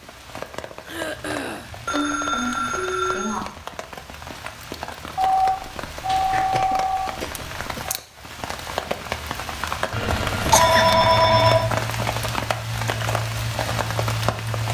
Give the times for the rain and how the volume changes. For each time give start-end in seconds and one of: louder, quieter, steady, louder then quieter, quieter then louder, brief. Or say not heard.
0.0-14.6 louder.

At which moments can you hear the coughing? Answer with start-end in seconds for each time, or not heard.
0.8-1.8, 6.5-7.8, 10.2-10.9.